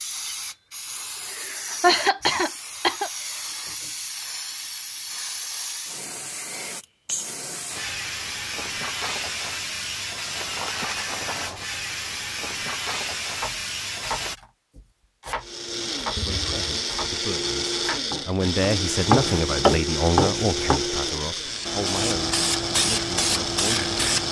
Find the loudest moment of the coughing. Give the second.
2 s.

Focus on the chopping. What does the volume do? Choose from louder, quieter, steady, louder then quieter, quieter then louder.
louder.